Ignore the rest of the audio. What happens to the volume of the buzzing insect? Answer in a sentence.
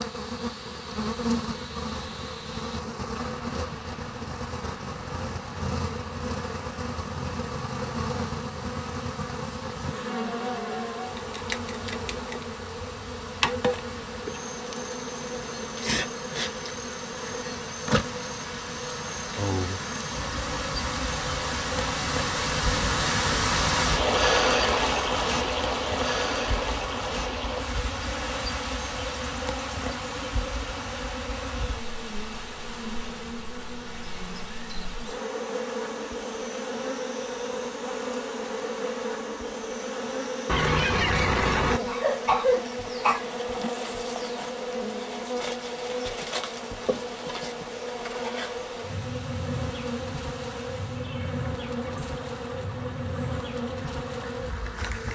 The loudness of the buzzing insect stays about the same.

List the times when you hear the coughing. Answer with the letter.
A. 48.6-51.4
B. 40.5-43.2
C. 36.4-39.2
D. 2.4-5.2
B.